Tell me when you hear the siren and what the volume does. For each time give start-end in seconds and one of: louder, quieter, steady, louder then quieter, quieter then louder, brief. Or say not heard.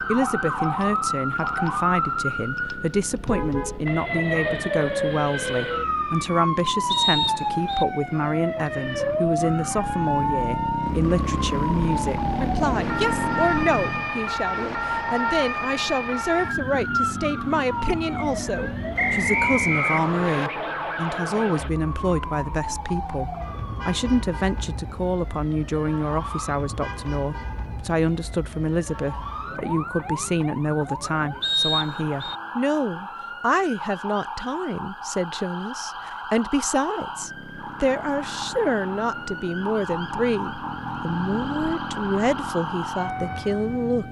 0.0-44.0 quieter.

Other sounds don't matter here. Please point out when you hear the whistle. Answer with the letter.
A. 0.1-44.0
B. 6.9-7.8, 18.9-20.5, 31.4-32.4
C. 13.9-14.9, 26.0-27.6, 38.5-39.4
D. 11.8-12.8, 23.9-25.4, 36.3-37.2
B.